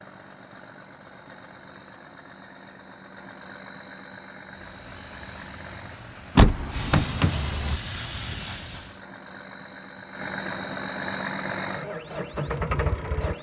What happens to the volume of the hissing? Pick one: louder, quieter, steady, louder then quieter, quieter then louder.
louder.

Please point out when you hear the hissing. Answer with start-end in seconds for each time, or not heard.
4.4-9.0.